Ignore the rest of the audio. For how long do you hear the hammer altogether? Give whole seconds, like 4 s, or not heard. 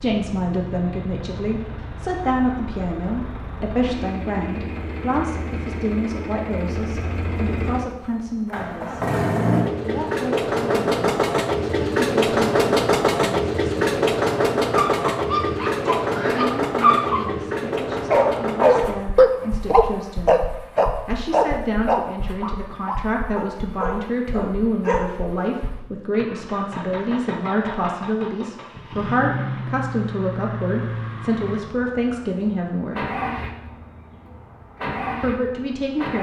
not heard.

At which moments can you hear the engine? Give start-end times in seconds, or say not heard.
0.0-36.1.